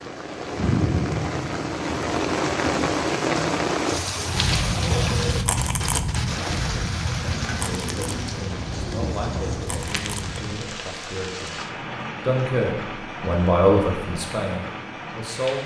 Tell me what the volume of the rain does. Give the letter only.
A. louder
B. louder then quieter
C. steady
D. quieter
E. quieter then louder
D.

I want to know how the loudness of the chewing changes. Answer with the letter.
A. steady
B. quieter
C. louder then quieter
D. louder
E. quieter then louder
B.